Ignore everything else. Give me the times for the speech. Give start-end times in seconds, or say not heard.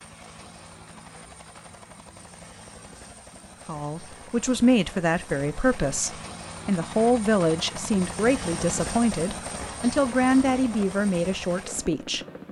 3.6-12.2.